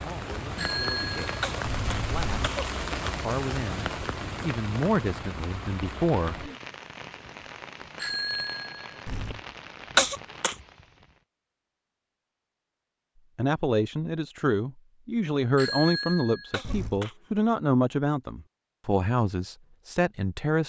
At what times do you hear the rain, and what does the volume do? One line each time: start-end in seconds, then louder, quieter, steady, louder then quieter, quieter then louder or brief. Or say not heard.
0.0-11.2 quieter.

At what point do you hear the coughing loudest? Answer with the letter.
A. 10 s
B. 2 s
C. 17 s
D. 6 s
A.